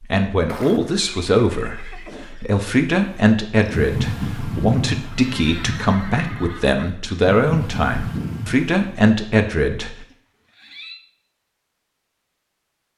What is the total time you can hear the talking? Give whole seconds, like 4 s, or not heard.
10 s.